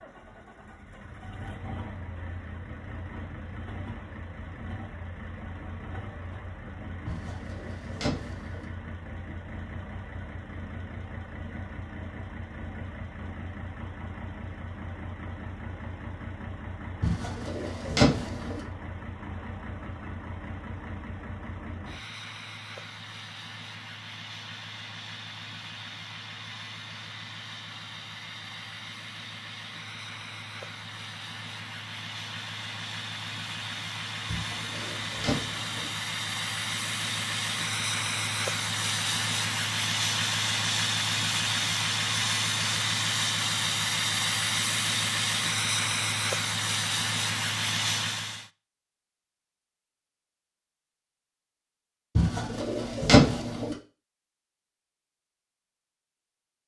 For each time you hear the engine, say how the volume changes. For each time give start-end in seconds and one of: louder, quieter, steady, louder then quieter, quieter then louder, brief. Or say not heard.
0.0-48.5 louder.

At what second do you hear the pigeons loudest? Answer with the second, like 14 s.
53 s.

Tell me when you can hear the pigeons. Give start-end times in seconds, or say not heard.
7.0-8.7, 17.0-18.6, 34.2-35.9, 52.1-53.8.